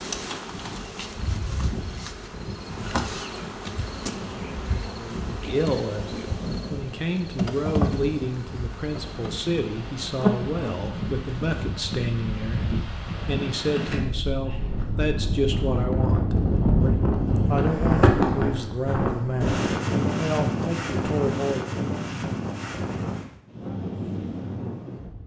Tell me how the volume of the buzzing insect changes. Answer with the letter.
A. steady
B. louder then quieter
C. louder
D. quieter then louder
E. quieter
C.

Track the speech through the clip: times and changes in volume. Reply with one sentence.
You can hear the speech from 5.2 to 21.6 s, at a steady volume.